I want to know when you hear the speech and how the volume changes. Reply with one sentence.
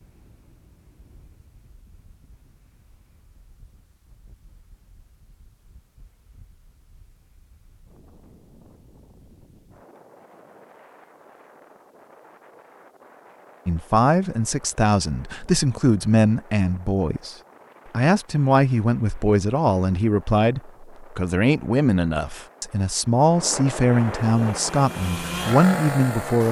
The speech can be heard from 13.7 to 26.4 s, at a steady volume.